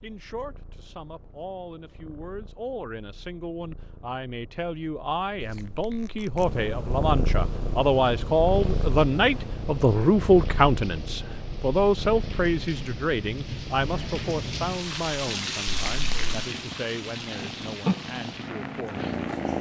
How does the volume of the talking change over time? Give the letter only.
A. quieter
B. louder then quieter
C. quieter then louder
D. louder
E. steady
B.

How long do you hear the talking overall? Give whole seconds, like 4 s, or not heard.
19 s.